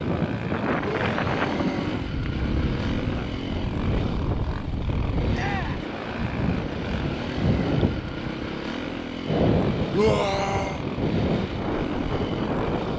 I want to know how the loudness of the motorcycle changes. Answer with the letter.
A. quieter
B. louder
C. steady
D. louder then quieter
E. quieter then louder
C.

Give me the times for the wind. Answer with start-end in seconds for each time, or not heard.
0.0-12.9.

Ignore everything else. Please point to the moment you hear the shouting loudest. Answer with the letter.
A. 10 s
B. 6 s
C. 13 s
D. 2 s
A.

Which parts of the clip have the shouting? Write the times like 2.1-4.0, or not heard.
0.8-2.1, 5.3-5.8, 9.9-10.8.